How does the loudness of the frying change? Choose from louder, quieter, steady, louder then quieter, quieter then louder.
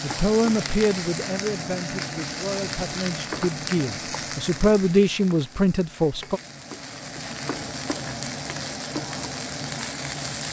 quieter then louder.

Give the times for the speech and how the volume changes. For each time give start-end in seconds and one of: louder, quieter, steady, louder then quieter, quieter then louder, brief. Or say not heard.
0.0-6.4 quieter then louder.